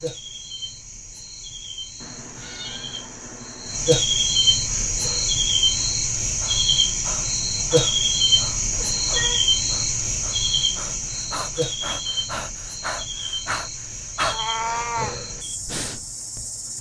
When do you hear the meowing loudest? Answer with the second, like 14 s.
15 s.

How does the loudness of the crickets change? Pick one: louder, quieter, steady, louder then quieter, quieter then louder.
louder then quieter.